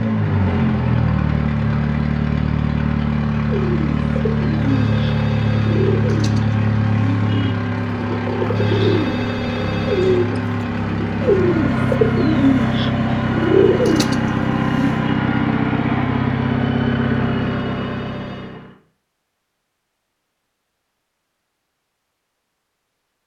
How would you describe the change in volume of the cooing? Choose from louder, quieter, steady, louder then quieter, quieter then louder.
louder.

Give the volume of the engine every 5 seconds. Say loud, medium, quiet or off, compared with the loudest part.
loud, loud, loud, loud, off.